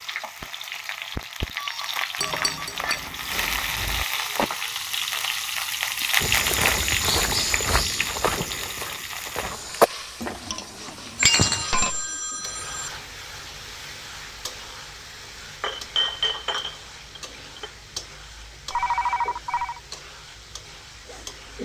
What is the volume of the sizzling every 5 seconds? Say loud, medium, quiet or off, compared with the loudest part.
loud, loud, medium, quiet, quiet.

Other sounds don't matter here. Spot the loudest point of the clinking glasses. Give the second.
11 s.